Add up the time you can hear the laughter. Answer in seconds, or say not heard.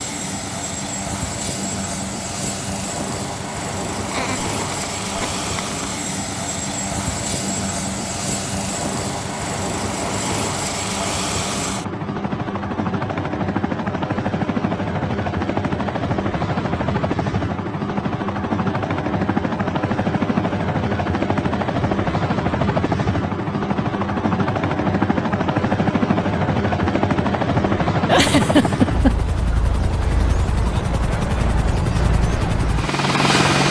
3 s.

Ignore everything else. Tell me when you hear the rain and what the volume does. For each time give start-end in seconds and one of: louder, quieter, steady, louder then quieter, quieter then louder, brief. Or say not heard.
not heard.